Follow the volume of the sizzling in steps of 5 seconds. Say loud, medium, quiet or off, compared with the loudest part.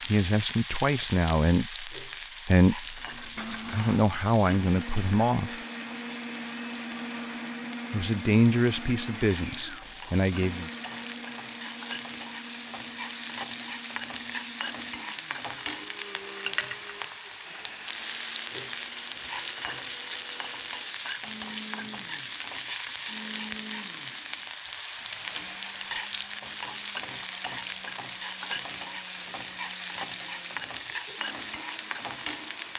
loud, medium, loud, loud, loud, loud, loud.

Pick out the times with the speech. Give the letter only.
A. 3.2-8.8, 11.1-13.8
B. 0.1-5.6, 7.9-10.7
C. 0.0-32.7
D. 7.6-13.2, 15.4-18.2
B.